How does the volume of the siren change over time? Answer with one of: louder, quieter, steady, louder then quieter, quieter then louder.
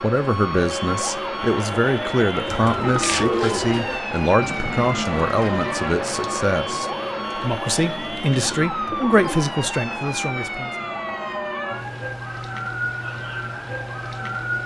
steady.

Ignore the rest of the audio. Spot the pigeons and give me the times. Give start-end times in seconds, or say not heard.
2.5-9.4.